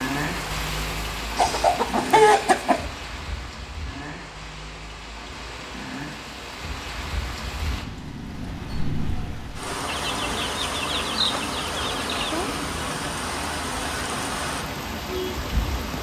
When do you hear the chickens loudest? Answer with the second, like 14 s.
2 s.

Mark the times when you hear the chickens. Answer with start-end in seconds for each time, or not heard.
1.4-2.9, 9.8-12.5.